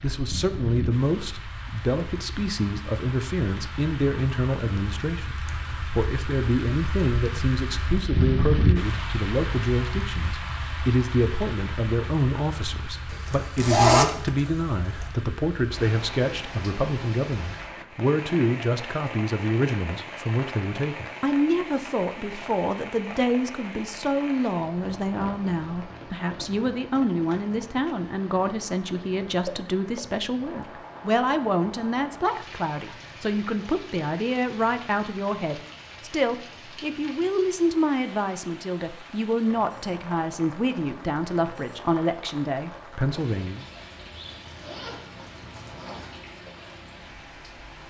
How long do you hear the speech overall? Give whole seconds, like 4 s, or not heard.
44 s.